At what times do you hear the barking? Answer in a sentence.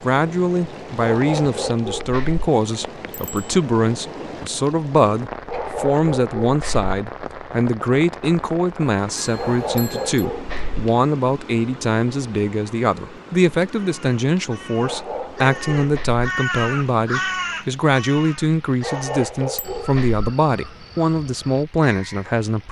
The barking can be heard from 0.9 to 2.5 s, from 5.5 to 6.9 s, from 9.3 to 10.8 s, from 14.8 to 16.2 s and from 18.8 to 20.2 s.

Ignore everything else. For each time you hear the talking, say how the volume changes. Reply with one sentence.
The talking can be heard from 0.0 to 22.6 s, at a steady volume.